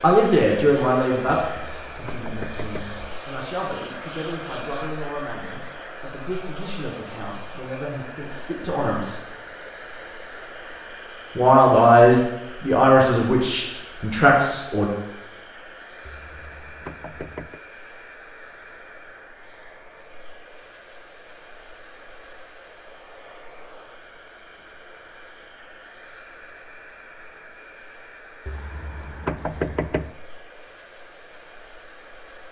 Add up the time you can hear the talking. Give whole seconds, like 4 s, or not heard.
13 s.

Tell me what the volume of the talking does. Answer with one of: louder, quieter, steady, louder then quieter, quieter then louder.
quieter then louder.